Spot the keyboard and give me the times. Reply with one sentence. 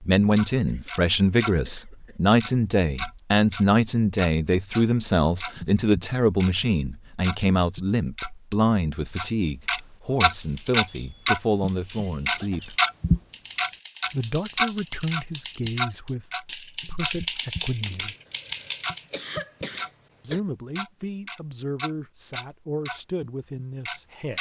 The keyboard can be heard from 10.3 to 19.1 s.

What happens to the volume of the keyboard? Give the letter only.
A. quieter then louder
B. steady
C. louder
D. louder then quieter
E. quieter
C.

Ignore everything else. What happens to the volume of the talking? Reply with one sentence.
The loudness of the talking goes down.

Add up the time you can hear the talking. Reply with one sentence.
The talking can be heard for 21 seconds in total.